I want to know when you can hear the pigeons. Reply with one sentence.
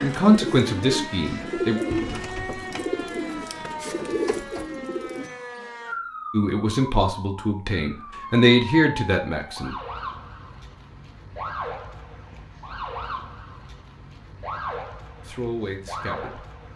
The pigeons can be heard from 0.0 to 5.3 s.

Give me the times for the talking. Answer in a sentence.
The talking can be heard from 0.0 to 1.8 s, from 6.3 to 9.8 s and from 15.2 to 16.4 s.